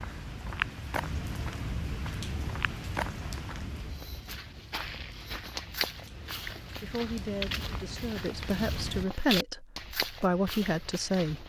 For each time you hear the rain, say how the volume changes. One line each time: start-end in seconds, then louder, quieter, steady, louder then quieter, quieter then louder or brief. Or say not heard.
0.0-9.1 quieter then louder.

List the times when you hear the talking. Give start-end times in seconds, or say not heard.
6.8-11.4.